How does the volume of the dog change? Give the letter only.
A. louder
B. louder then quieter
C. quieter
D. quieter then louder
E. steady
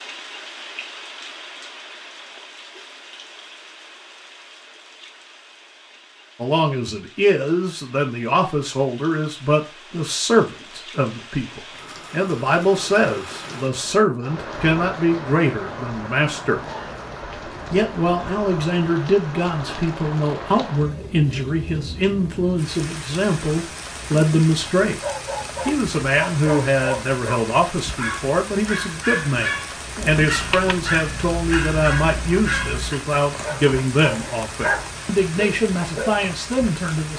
E.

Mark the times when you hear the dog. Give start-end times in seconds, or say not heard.
25.0-36.1.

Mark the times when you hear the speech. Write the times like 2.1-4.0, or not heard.
6.4-16.6, 17.7-25.0, 25.6-37.1.